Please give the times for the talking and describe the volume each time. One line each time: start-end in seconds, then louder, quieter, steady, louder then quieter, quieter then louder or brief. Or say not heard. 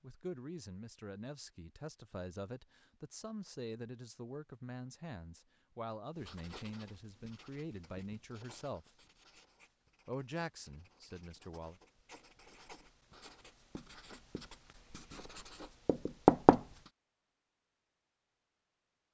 0.0-8.9 steady
10.1-11.8 brief.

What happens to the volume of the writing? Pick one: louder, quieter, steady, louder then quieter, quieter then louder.
quieter then louder.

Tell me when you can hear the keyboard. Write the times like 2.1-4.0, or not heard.
not heard.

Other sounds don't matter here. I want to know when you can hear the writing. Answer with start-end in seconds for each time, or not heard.
6.2-16.9.